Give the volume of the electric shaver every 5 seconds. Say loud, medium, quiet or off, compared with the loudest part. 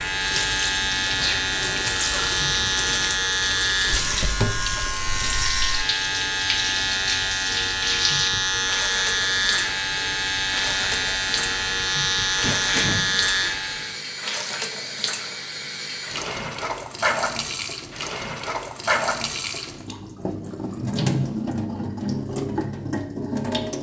loud, loud, loud, off, off.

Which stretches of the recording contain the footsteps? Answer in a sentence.
The footsteps can't be heard in this clip.